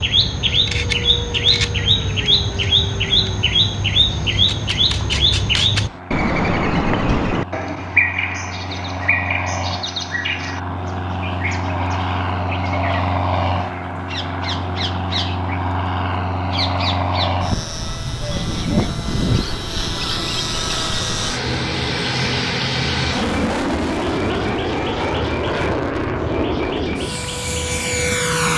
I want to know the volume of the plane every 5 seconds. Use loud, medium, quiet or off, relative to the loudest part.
quiet, medium, loud, loud, loud, loud.